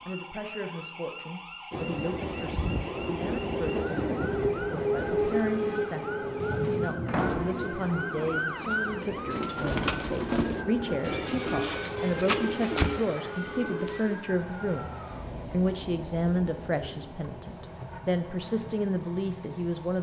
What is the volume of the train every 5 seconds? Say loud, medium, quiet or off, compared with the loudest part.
loud, loud, medium, quiet.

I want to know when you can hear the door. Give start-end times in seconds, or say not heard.
7.0-7.7.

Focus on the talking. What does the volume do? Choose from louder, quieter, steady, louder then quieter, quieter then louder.
louder.